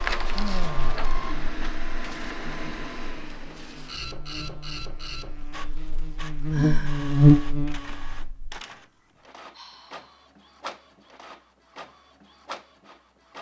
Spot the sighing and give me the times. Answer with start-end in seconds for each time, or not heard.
0.3-1.0, 6.5-7.0, 9.5-10.2.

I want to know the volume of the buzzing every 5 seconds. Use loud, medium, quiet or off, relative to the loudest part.
quiet, loud, off.